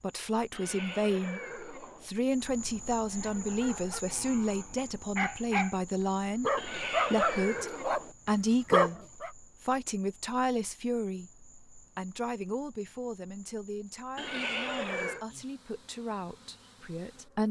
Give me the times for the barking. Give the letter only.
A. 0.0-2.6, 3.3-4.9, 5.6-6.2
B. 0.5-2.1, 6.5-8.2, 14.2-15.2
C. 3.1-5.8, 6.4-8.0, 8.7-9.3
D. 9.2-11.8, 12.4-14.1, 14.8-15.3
C.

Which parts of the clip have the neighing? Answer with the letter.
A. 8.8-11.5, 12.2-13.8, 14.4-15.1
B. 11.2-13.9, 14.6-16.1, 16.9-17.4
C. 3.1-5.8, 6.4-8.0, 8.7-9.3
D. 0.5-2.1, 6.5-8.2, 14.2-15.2
D.